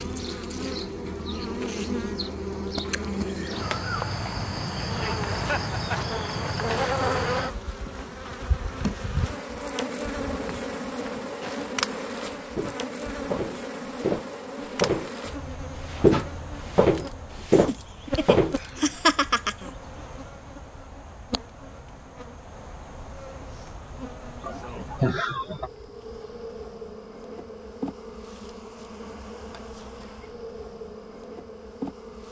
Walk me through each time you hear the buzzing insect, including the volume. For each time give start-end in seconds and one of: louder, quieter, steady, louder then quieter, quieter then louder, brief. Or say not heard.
0.0-32.2 quieter.